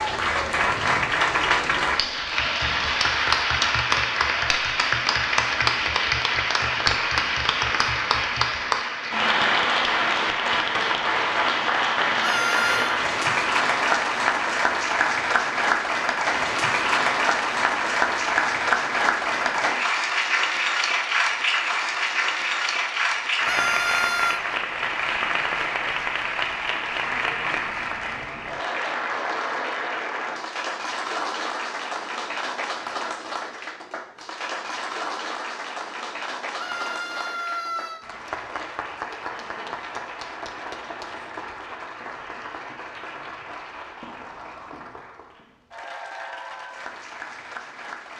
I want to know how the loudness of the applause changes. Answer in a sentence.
The loudness of the applause goes down.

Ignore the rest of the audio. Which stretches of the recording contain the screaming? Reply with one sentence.
You can hear the screaming from 12.2 to 13.0 s, from 23.4 to 24.4 s and from 36.5 to 38.0 s.